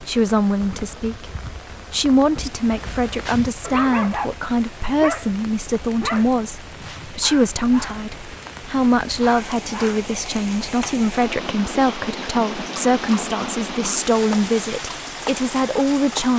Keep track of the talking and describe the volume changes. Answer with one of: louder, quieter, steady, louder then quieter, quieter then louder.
steady.